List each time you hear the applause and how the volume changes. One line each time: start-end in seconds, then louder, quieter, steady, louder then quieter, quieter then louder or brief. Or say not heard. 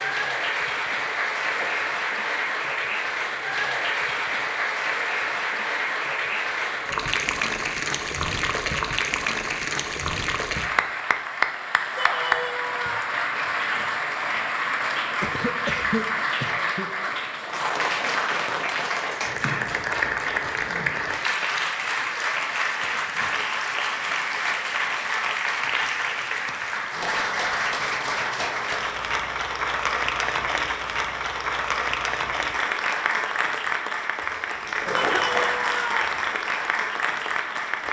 0.0-37.8 steady.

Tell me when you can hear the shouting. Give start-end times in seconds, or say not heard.
11.9-13.1, 34.9-36.0.